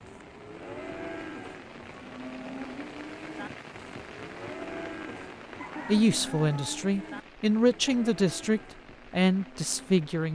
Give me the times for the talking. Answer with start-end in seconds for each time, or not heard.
5.8-10.3.